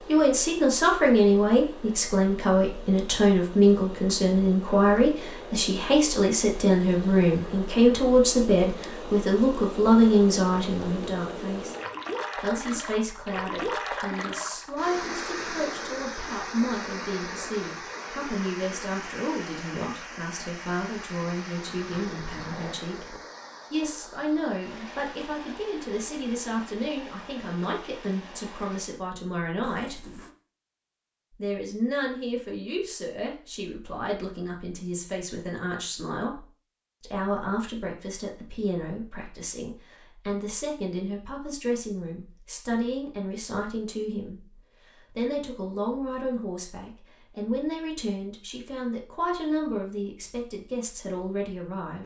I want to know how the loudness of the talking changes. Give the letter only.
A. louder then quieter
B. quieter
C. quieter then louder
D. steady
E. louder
B.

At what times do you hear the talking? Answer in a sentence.
The talking can be heard from 0.1 to 11.8 s, from 12.3 to 30.1 s and from 31.4 to 52.0 s.